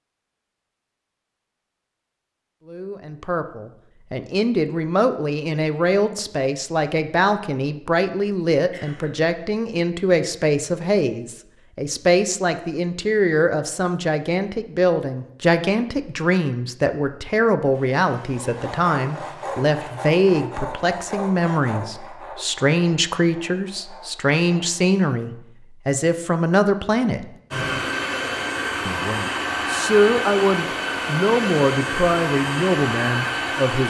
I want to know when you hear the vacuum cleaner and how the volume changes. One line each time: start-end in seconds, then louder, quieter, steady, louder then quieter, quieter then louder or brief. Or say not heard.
17.7-20.0 brief
27.5-33.8 steady.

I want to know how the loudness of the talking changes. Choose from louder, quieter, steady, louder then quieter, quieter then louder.
steady.